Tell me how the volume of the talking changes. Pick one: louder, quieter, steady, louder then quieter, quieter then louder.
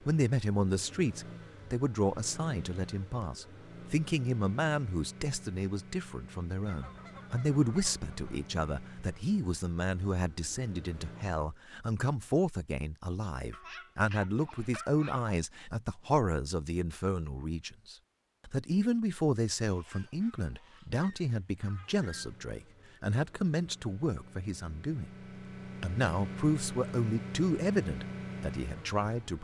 steady.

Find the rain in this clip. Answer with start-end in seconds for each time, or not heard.
not heard.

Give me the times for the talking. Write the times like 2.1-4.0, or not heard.
0.1-25.1, 25.8-29.3.